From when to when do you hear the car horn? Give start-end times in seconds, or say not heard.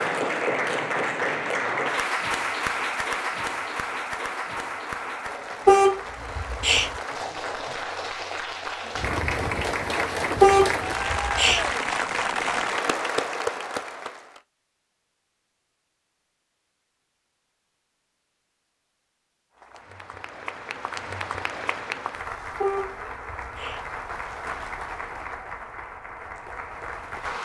5.7-6.9, 10.4-11.6, 22.6-23.8.